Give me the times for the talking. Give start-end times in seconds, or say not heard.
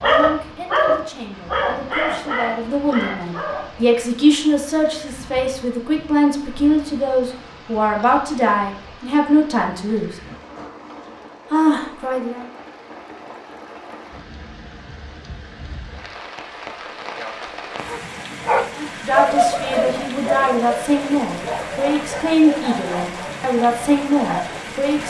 0.0-10.2, 11.5-12.4, 18.8-25.0.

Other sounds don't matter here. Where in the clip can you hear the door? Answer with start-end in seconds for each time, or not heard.
not heard.